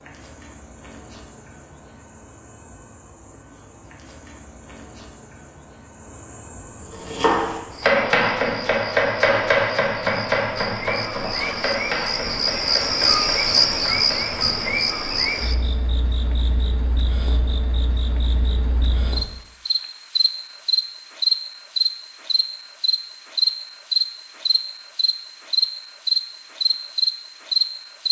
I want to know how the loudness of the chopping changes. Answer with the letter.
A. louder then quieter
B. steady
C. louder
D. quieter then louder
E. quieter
E.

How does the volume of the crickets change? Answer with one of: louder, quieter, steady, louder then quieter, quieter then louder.
louder.